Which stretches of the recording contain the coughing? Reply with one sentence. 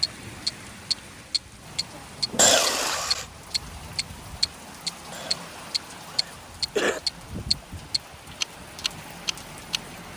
You can hear the coughing from 2.4 to 3.2 s and from 5.1 to 7.0 s.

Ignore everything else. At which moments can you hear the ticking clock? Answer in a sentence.
You can hear the ticking clock from 0.0 to 10.1 s.